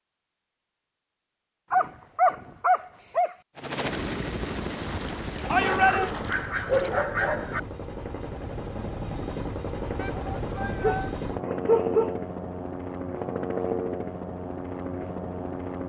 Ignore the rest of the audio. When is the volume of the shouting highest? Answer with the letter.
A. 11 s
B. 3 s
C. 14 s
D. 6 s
D.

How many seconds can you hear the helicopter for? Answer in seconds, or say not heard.
12 s.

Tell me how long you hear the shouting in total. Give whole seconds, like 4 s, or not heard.
2 s.